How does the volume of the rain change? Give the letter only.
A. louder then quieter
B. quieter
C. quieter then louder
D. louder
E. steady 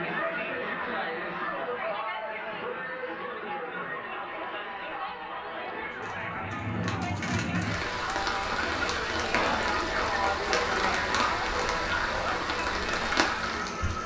E.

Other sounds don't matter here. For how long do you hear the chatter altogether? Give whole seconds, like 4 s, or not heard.
14 s.